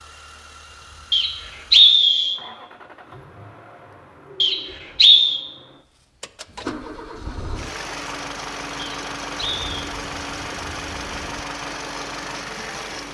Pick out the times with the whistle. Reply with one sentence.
The whistle can be heard from 1.1 to 2.4 s, from 4.4 to 5.4 s and from 8.8 to 9.7 s.